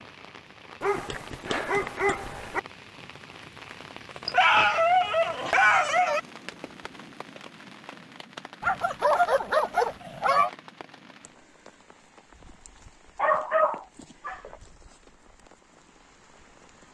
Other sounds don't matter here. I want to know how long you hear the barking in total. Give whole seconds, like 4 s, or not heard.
7 s.